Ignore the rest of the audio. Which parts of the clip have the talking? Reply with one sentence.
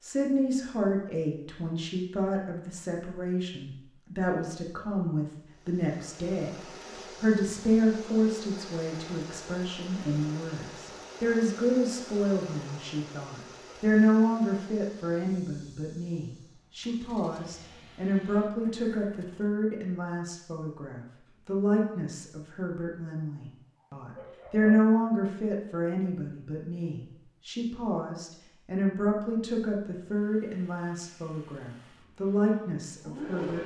The talking can be heard from 0.0 to 33.6 s.